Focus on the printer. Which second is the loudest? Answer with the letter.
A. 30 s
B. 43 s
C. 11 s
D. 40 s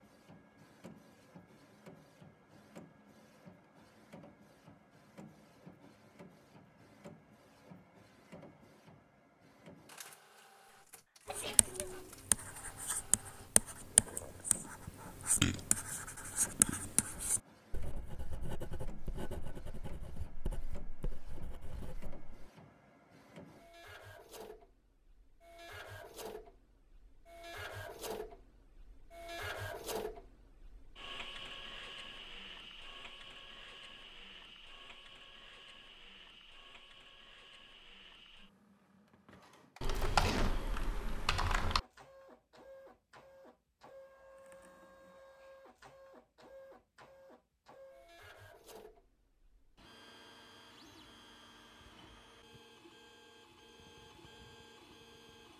A.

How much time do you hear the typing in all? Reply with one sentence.
You can hear the typing for 2 seconds altogether.